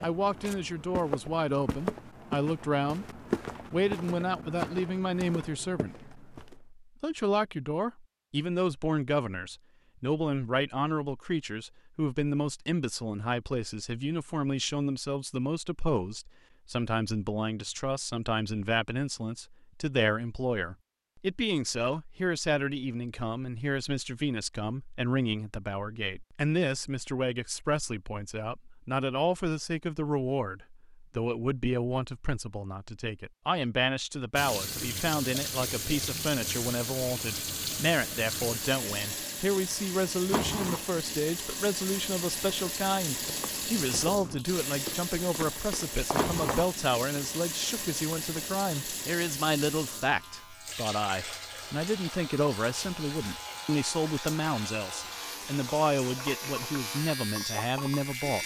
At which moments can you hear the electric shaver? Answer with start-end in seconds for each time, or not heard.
50.0-58.4.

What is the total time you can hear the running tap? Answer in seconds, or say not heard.
24 s.